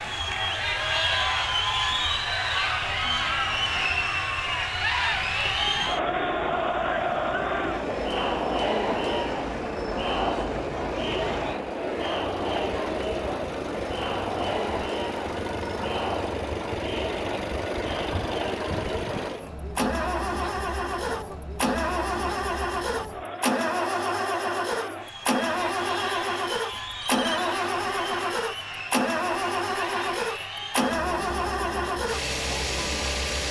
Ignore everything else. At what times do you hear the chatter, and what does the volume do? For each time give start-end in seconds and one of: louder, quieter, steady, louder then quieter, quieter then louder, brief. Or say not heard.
0.0-33.4 quieter.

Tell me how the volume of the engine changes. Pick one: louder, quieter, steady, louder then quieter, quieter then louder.
louder.